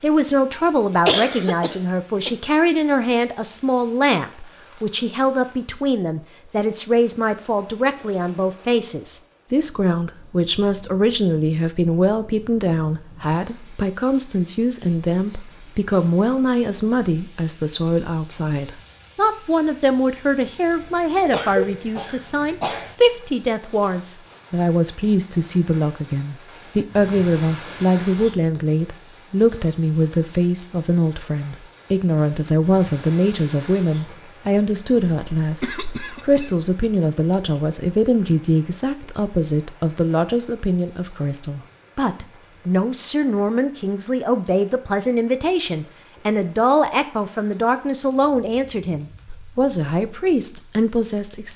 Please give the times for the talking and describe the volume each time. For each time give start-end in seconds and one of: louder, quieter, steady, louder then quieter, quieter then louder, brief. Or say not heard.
0.0-51.5 steady.